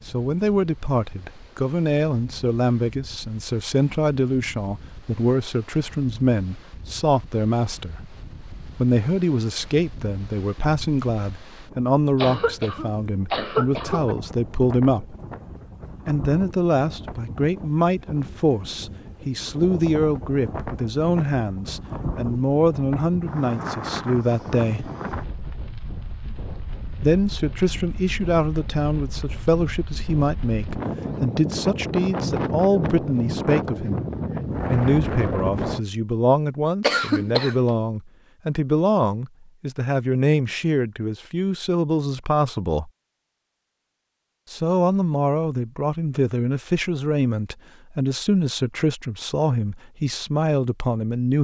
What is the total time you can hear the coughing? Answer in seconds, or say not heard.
3 s.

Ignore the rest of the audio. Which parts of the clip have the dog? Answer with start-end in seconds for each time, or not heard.
not heard.